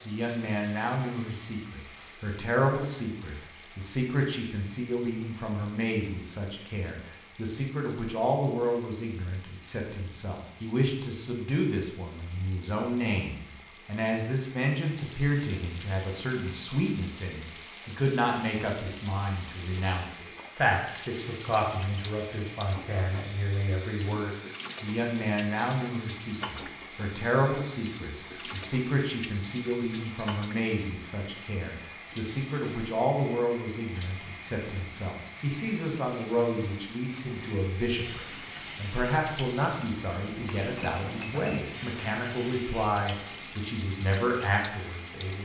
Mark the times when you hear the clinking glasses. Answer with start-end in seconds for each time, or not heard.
40.4-41.6.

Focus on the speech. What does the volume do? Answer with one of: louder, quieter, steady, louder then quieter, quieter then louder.
steady.